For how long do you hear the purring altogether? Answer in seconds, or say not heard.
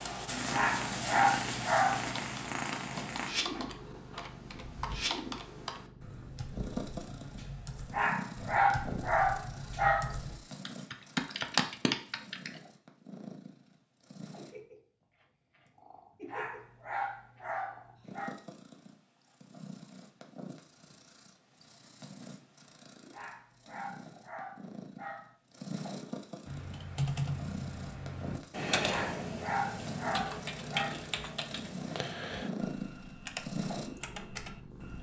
35 s.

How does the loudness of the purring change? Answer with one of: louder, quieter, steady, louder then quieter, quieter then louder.
quieter then louder.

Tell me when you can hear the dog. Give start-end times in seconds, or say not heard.
0.5-2.1, 7.9-10.2, 16.2-18.4, 23.1-25.4, 28.9-30.9.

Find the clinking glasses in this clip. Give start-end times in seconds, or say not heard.
not heard.